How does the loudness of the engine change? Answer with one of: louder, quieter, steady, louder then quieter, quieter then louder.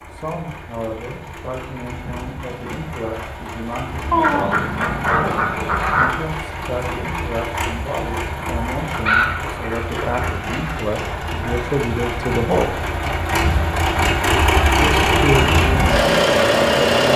louder.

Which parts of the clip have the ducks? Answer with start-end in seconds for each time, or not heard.
4.1-6.2, 8.9-10.6.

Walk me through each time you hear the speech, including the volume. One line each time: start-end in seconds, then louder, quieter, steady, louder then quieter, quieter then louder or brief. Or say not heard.
0.1-12.8 louder
14.8-17.1 brief.